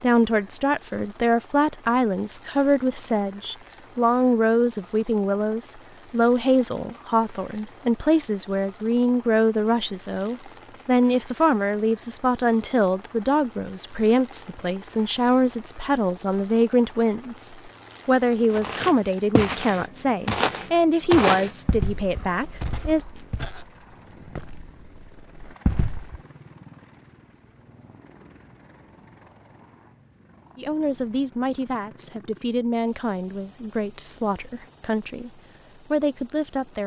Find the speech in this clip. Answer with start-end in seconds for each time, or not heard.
0.0-23.1, 30.6-36.8.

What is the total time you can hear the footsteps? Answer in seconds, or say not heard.
8 s.